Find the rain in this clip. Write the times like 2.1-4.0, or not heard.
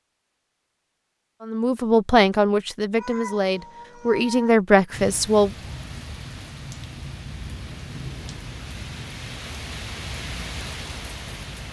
4.9-11.6.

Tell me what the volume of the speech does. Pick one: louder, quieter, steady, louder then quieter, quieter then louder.
quieter then louder.